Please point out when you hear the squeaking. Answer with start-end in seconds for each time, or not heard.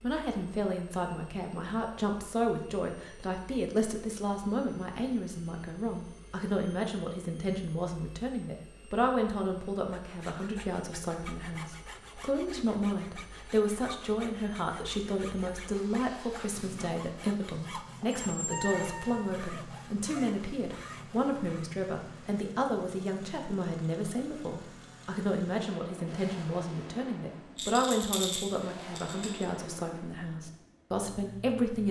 18.0-19.3.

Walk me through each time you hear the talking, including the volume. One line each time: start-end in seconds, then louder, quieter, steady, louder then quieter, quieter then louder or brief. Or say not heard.
0.0-31.8 steady.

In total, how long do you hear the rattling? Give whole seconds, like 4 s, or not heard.
2 s.